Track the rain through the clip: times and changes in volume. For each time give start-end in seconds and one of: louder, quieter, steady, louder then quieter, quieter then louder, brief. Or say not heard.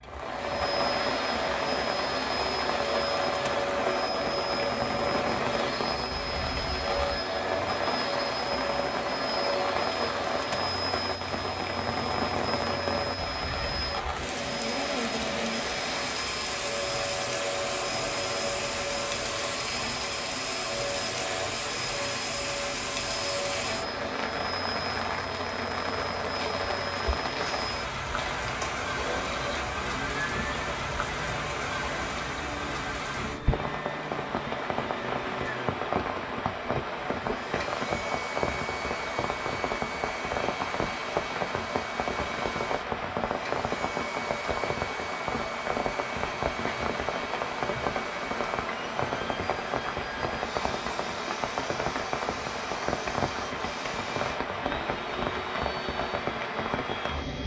0.0-57.4 steady.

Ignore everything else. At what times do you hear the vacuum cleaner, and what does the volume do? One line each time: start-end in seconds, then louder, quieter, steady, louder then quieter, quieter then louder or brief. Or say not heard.
0.0-57.4 quieter.